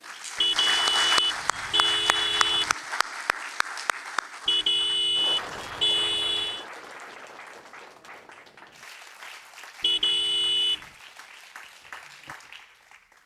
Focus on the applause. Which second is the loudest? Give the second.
1 s.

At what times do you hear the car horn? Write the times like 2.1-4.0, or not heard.
0.4-2.8, 4.5-6.7, 9.8-10.8.